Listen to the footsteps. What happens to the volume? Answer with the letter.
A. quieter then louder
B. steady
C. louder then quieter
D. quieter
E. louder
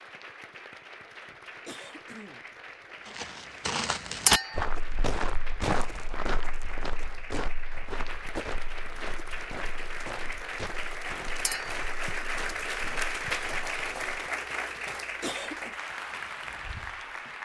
D.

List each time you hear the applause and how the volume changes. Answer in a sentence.
You can hear the applause from 0.0 to 17.3 s, getting louder.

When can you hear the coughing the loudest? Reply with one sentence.
The volume of the coughing peaks at 15 seconds.